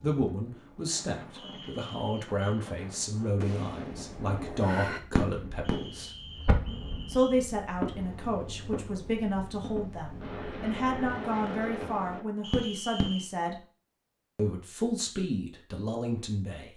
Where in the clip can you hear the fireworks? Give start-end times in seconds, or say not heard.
3.4-13.2.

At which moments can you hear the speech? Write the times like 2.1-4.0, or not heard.
0.0-6.1, 7.0-13.6, 14.3-16.7.